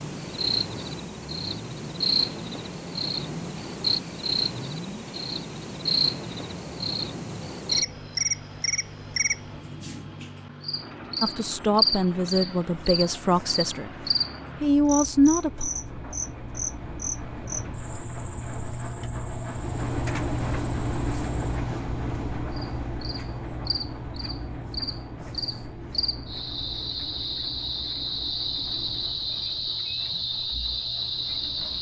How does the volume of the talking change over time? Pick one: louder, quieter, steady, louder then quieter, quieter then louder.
quieter then louder.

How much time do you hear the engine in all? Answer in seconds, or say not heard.
32 s.